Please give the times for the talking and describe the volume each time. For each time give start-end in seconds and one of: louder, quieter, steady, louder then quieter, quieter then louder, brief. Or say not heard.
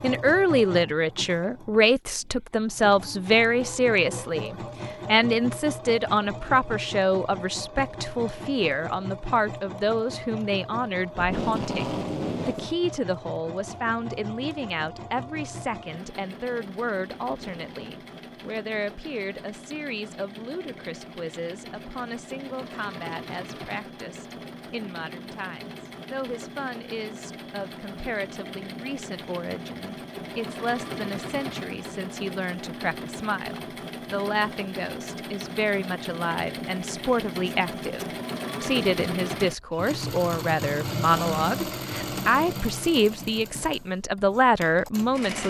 0.0-45.4 quieter then louder.